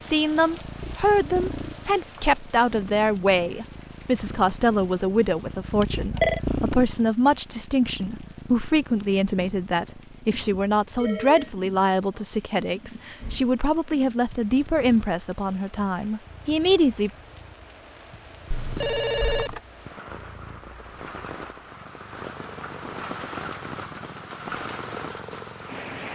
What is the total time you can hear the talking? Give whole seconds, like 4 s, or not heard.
17 s.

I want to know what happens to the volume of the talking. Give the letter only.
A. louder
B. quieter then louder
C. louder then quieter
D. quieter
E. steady
E.